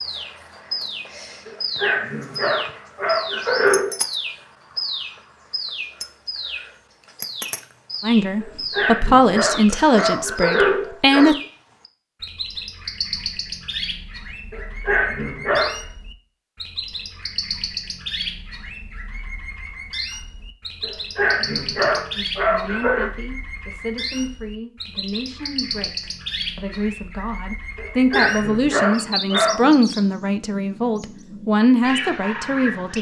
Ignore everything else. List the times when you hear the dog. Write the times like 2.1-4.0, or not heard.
1.4-4.0, 8.4-11.3, 14.5-15.8, 20.8-23.1, 27.8-29.7.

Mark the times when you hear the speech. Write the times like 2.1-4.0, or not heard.
8.0-11.3, 22.1-32.9.